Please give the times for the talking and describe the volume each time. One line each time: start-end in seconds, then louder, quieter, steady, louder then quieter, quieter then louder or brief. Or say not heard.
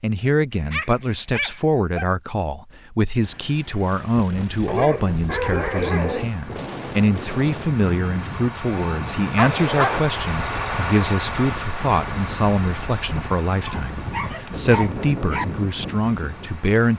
0.0-16.9 steady.